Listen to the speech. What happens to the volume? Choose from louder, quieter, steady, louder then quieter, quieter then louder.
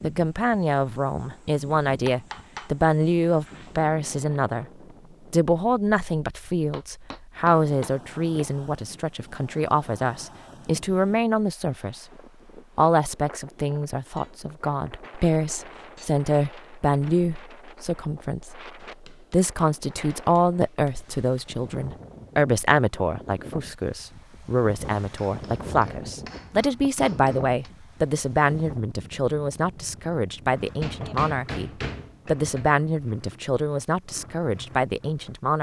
steady.